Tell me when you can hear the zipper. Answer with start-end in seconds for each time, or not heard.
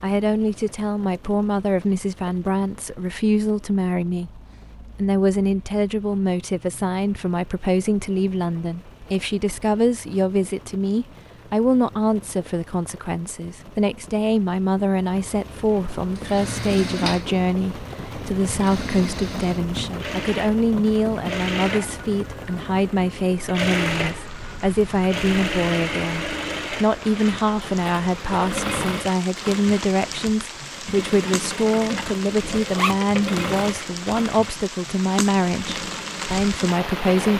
32.0-33.0.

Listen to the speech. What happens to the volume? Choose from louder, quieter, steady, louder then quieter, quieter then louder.
steady.